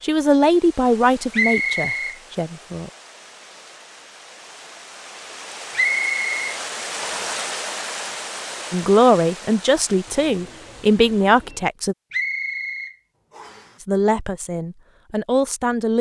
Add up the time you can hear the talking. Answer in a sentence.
The talking can be heard for 8 seconds in total.